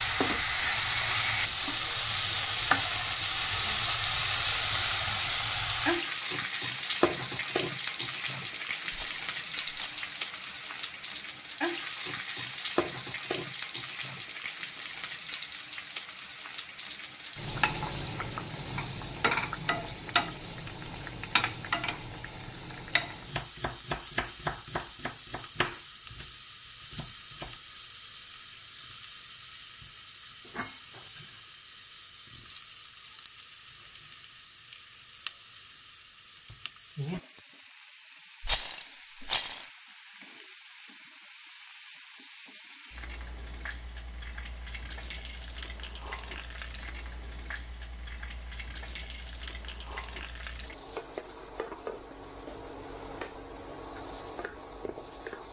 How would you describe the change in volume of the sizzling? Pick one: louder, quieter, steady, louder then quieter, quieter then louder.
quieter.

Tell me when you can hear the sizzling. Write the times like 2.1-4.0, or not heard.
0.0-55.4.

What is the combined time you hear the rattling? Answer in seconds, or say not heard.
2 s.